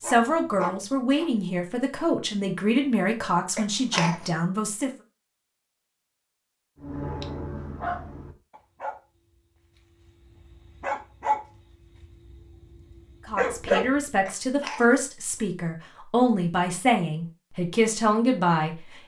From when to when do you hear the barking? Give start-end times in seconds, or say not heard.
0.0-1.3, 6.8-14.0.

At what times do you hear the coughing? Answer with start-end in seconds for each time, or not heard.
3.5-4.4, 14.2-15.0.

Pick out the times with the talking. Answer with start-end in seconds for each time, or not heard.
0.0-4.9, 13.2-18.8.